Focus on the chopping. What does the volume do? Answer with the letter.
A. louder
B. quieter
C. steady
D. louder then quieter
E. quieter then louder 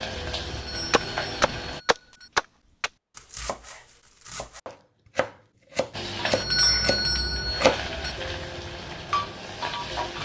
E.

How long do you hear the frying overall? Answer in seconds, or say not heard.
6 s.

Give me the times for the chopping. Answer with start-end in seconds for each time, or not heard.
0.9-7.8.